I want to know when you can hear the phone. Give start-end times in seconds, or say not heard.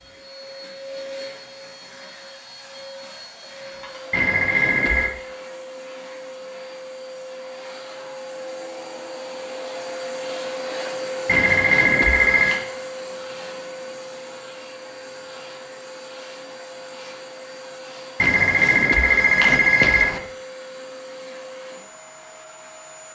4.1-5.1, 11.2-12.6, 18.2-20.2.